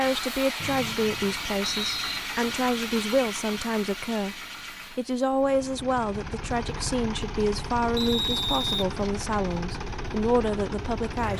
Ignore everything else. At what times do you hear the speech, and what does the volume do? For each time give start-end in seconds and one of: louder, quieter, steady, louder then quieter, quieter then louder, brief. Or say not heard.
0.0-11.3 steady.